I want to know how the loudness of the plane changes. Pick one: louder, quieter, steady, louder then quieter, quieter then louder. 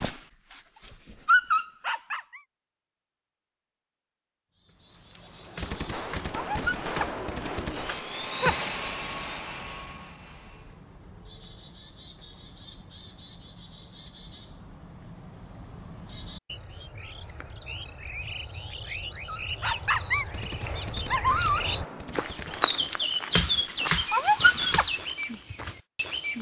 louder then quieter.